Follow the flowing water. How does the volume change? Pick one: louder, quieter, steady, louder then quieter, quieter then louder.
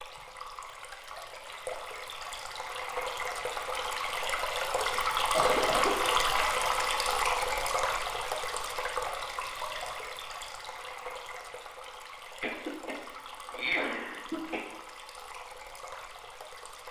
louder then quieter.